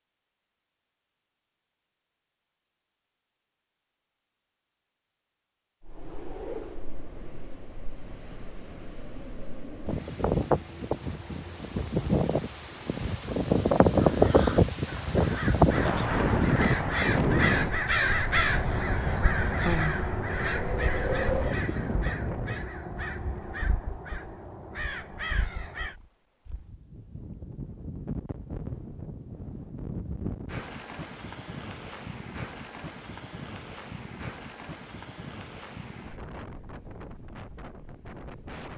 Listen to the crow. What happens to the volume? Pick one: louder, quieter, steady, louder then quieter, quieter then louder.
louder then quieter.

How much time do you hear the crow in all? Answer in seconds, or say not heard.
12 s.